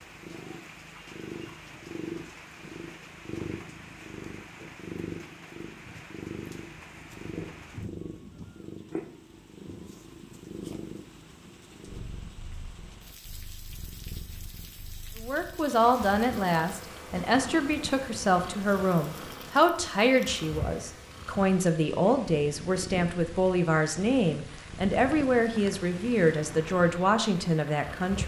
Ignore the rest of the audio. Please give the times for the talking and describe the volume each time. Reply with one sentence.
The talking can be heard from 15.2 to 28.2 s, at a steady volume.